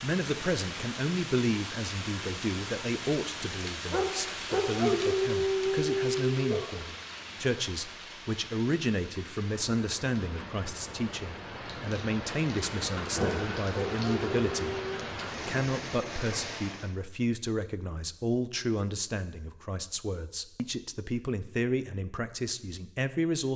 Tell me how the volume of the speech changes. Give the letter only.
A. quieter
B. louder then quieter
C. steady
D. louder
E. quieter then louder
C.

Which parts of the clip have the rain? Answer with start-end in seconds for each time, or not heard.
0.0-16.9.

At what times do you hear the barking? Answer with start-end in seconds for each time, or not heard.
3.9-6.8, 13.1-15.1.